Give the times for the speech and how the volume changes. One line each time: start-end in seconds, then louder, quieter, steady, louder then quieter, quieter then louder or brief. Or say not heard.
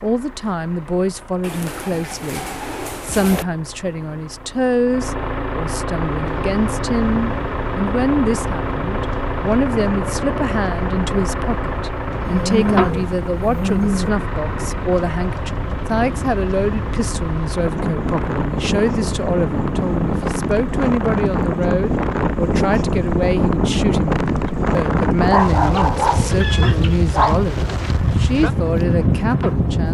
0.0-29.8 steady.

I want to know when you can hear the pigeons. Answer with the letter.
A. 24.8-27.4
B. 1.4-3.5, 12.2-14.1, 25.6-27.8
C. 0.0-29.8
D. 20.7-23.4
B.